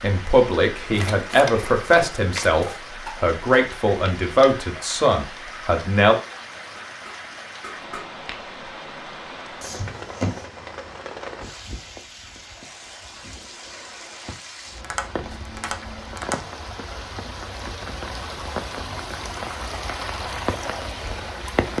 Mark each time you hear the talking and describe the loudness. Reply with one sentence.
The talking can be heard from 0.0 to 6.2 s, at a steady volume.